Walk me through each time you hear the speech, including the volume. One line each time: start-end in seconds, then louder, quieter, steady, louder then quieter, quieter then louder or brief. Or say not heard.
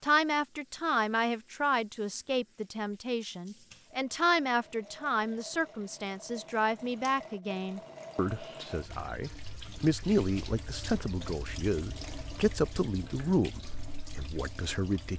0.0-15.1 steady.